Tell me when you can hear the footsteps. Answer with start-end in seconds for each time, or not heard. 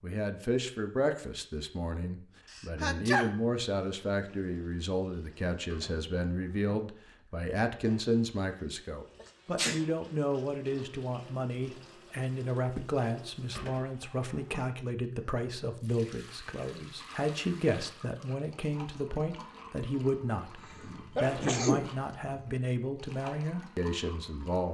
not heard.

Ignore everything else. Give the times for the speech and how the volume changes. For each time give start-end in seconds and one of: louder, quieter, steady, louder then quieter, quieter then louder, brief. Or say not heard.
0.0-24.6 steady.